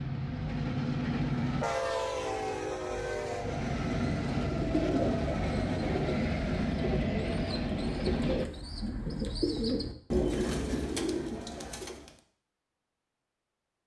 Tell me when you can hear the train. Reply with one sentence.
You can hear the train from 0.0 to 8.4 s.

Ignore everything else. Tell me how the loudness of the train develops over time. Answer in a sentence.
The volume of the train stays about the same.